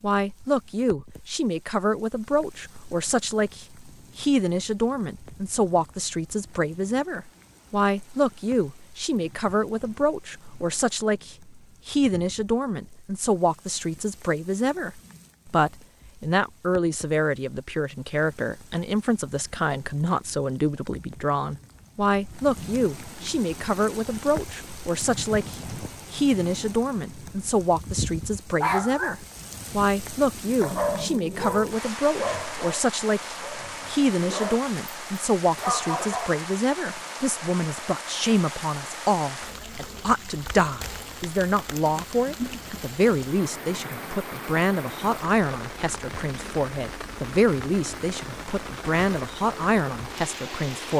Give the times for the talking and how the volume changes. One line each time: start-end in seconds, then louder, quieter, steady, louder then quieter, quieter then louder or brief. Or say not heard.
0.0-50.9 steady.